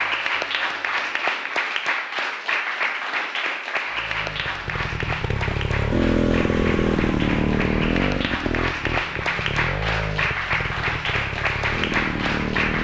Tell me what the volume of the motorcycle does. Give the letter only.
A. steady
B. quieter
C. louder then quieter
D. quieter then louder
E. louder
C.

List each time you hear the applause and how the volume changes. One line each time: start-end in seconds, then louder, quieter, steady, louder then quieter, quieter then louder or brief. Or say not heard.
0.0-12.7 quieter then louder.